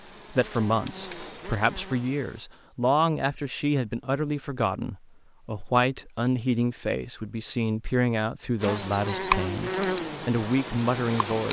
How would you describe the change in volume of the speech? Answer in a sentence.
The loudness of the speech stays about the same.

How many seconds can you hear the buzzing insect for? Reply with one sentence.
The buzzing insect can be heard for 5 seconds in total.